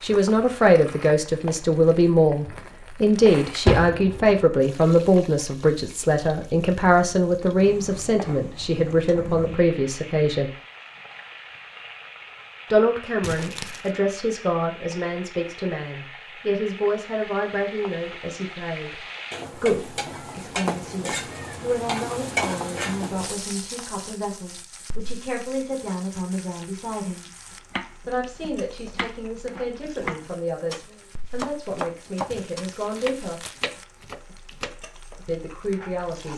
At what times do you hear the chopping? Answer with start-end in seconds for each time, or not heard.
27.7-34.8.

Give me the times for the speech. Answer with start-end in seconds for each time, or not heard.
0.0-10.5, 12.7-27.2, 28.1-33.5, 35.2-36.3.